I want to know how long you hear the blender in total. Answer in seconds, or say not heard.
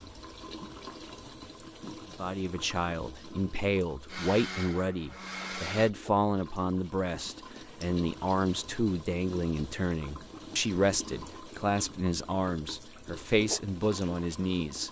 2 s.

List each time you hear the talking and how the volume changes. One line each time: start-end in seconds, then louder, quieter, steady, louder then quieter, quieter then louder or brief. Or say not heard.
2.2-14.8 steady.